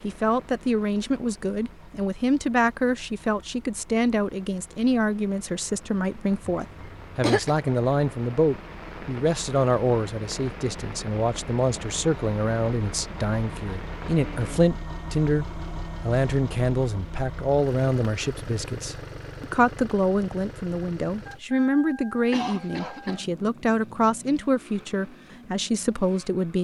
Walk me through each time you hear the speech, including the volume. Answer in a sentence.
The speech can be heard from 0.0 to 26.5 s, at a steady volume.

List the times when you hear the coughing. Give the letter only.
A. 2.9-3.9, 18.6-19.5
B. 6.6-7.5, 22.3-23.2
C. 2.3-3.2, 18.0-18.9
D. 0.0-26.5
B.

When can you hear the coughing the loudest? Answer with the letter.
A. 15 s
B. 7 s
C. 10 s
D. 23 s
B.